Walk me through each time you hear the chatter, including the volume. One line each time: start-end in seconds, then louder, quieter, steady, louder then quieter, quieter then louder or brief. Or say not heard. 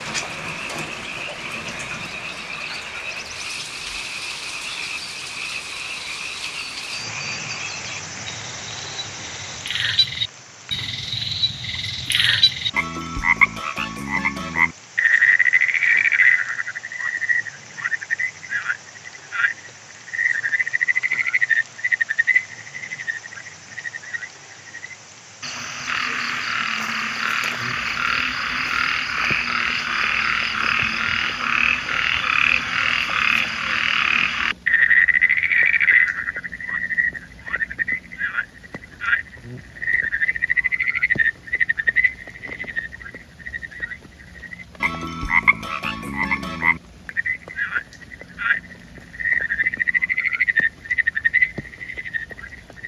not heard.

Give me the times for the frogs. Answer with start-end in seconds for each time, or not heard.
0.1-52.8.